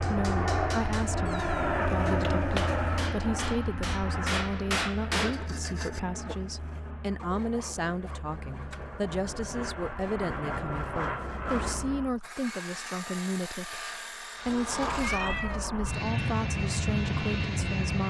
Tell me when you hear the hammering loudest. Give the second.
5 s.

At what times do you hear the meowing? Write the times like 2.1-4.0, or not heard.
1.2-3.1, 8.5-9.0, 14.4-15.8.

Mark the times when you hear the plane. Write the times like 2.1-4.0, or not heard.
0.0-12.2, 14.3-18.0.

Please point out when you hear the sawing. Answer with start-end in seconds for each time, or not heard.
5.2-15.6.